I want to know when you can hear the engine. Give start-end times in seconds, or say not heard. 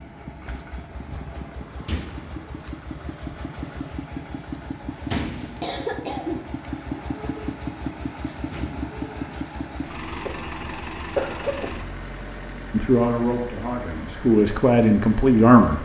0.0-15.8.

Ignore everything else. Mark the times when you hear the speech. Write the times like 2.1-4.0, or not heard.
12.7-15.8.